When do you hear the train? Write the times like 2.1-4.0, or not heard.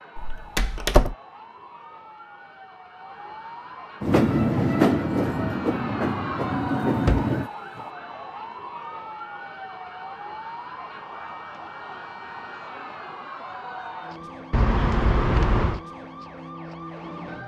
4.0-7.5.